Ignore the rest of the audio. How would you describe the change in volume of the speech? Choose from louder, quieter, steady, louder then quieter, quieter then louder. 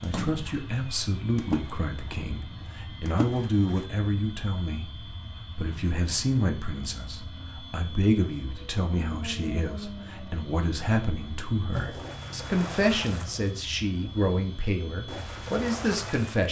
steady.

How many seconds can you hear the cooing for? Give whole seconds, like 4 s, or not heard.
not heard.